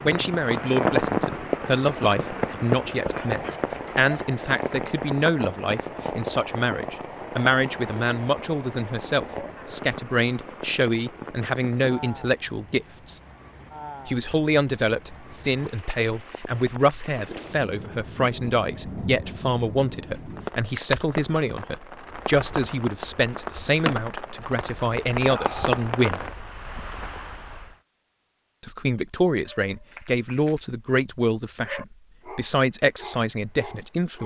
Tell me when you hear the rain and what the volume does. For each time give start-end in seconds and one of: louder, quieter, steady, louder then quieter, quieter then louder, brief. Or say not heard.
0.0-27.8 quieter then louder.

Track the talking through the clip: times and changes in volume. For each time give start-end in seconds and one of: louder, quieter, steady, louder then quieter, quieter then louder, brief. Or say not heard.
0.0-13.2 steady
14.1-26.2 steady
28.6-34.2 steady.